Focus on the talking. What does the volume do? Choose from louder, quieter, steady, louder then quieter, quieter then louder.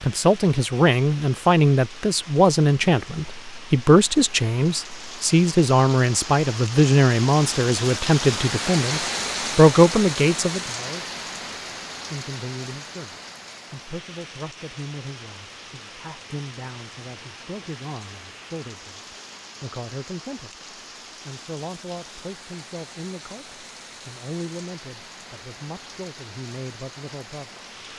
quieter.